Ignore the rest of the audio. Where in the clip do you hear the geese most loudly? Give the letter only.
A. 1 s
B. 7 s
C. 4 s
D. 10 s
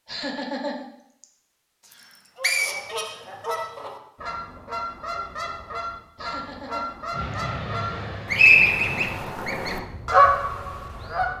D.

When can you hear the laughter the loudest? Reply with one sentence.
The volume of the laughter peaks at 1 second.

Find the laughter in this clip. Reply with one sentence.
The laughter can be heard from 0.1 to 1.2 s and from 6.2 to 7.3 s.